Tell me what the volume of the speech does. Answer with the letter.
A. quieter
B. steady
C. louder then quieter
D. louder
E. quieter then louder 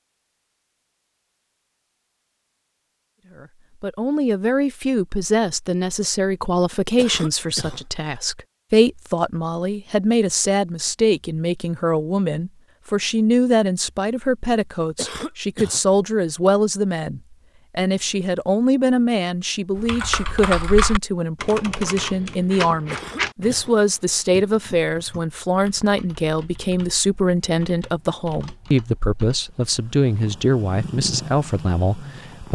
B.